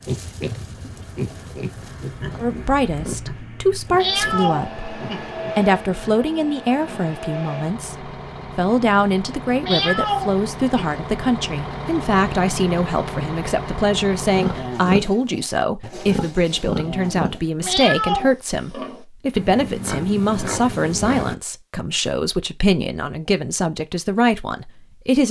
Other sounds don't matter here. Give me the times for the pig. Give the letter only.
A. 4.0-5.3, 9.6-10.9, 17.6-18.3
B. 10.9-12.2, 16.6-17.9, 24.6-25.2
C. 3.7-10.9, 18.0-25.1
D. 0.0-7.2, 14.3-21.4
D.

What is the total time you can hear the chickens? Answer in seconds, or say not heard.
not heard.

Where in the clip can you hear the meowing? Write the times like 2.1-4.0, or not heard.
4.0-5.3, 9.6-10.9, 17.6-18.3.